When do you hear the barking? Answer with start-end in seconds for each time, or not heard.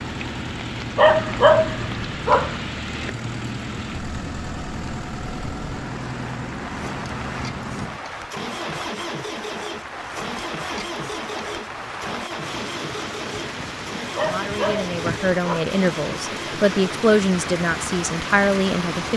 0.9-2.5, 14.2-15.8.